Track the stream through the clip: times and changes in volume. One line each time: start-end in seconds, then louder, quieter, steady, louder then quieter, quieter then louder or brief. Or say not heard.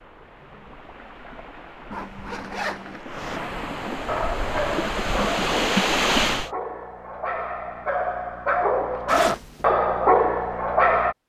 0.0-6.5 louder.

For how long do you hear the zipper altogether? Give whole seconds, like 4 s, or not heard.
2 s.